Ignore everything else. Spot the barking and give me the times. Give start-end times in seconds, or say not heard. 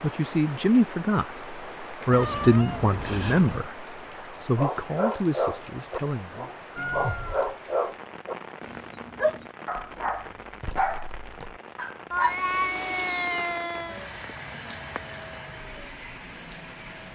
4.5-12.3.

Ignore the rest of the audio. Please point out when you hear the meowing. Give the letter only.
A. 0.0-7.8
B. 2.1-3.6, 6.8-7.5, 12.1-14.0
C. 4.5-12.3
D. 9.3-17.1
B.